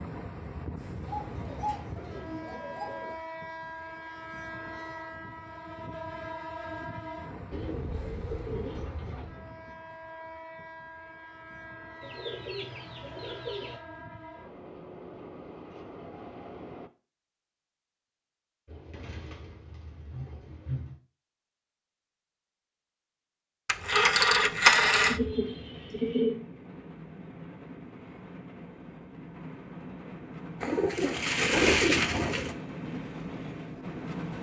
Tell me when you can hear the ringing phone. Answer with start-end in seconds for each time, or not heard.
23.6-25.2.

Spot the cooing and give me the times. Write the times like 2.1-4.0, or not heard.
1.1-3.1, 7.5-9.3, 12.0-13.8, 18.6-21.0, 24.9-26.4, 30.6-32.5.